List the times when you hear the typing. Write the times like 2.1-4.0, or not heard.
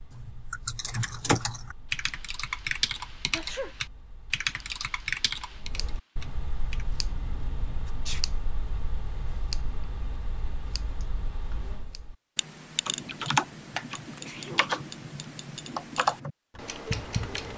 0.1-6.8, 12.8-17.5.